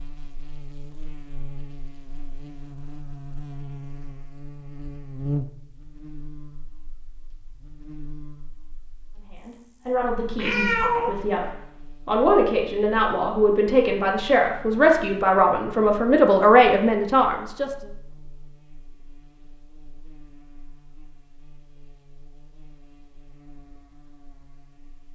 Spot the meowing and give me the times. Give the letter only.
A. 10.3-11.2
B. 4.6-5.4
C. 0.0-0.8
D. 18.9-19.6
A.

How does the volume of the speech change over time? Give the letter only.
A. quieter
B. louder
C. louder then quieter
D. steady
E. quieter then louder
B.